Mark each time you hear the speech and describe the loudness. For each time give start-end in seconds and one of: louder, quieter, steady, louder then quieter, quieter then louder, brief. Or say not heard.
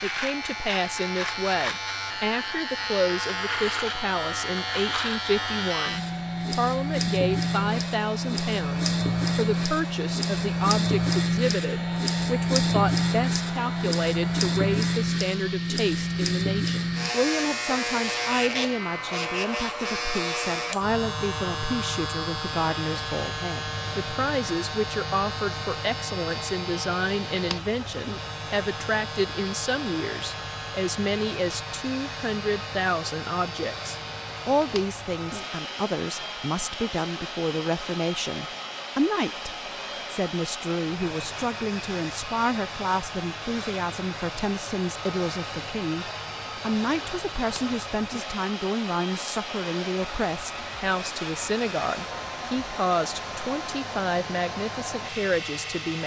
0.0-56.0 steady.